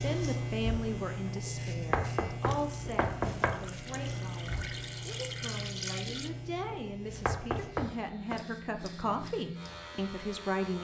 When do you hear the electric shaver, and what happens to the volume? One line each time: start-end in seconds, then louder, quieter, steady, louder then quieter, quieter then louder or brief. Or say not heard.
0.0-10.7 quieter.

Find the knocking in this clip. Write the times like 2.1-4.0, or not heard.
1.8-3.5, 7.1-8.4.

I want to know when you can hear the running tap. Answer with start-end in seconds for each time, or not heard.
2.4-6.3.